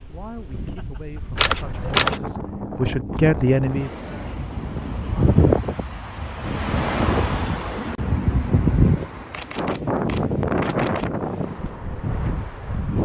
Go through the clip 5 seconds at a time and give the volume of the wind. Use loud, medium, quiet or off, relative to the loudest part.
medium, loud, loud.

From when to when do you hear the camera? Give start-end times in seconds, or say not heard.
1.4-2.2, 9.3-11.1.